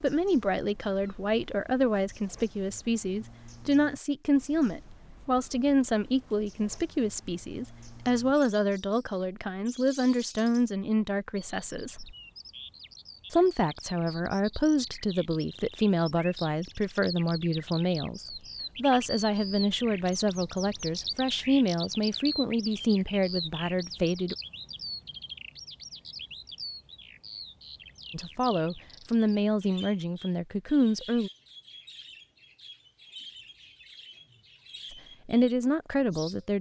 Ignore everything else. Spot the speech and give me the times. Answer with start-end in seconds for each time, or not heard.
0.0-12.2, 13.3-24.4, 28.1-31.3, 34.9-36.5.